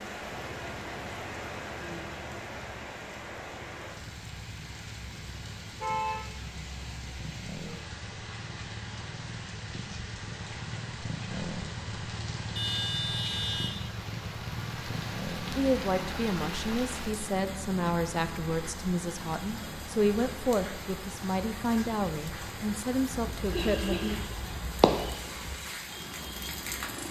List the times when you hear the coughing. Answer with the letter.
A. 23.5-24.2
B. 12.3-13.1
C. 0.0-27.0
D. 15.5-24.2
A.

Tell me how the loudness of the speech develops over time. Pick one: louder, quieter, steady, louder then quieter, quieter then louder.
steady.